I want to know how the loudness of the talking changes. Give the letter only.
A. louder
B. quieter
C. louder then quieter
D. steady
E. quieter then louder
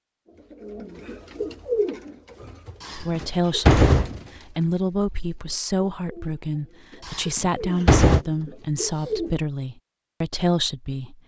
D.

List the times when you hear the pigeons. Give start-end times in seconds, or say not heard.
0.5-9.4.